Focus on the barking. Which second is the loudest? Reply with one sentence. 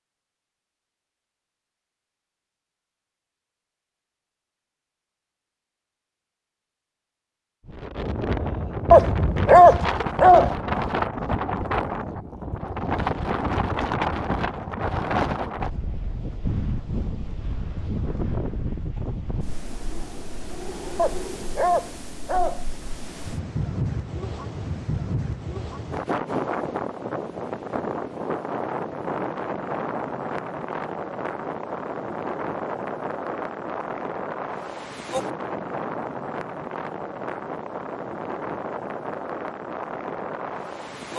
The volume of the barking peaks at 10 seconds.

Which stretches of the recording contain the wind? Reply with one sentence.
You can hear the wind from 7.7 to 41.1 s.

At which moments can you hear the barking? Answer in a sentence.
You can hear the barking from 8.9 to 10.6 s and from 20.9 to 22.6 s.